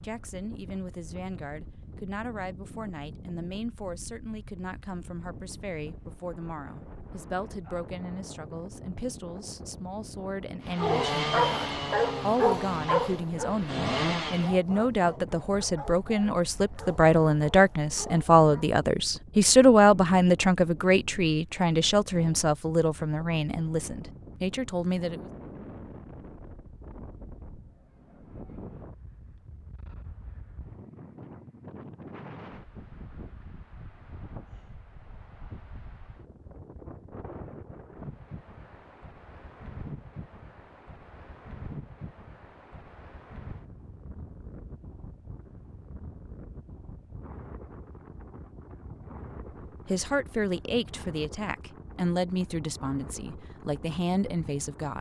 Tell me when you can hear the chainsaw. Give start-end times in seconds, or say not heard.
10.7-14.6.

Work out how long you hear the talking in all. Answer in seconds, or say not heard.
30 s.